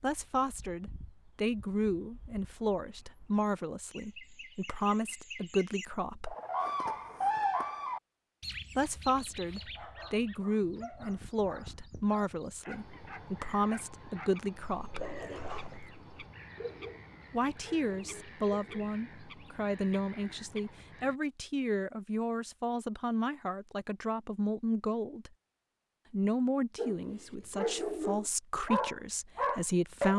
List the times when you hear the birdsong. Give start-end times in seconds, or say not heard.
0.0-21.2.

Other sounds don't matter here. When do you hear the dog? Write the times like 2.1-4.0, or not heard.
9.2-18.9, 26.8-30.1.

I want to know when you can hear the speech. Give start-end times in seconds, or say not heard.
0.0-6.3, 8.8-15.1, 17.3-25.3, 26.1-30.1.